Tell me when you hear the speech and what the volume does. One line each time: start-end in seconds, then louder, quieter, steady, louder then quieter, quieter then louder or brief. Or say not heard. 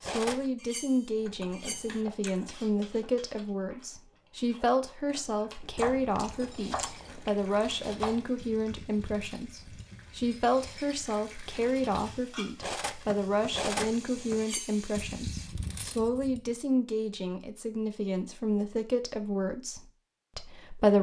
0.0-20.9 steady.